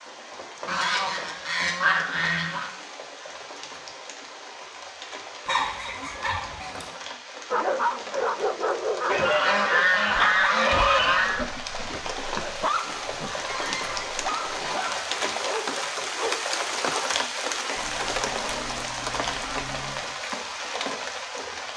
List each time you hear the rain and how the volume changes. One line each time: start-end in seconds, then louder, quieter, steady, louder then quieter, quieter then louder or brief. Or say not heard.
0.0-21.7 louder.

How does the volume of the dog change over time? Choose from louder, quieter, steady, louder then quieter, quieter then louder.
quieter.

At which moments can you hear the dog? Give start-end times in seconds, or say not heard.
7.5-17.1.